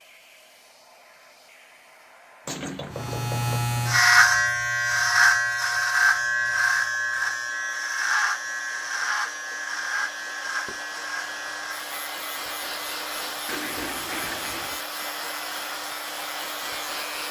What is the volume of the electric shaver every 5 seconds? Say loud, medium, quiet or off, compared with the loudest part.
loud, loud, quiet, quiet.